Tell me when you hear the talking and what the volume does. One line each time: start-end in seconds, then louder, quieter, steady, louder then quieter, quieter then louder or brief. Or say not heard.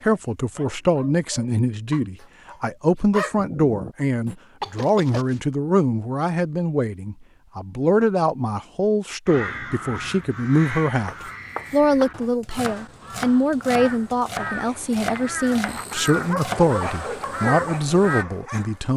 0.0-18.9 steady.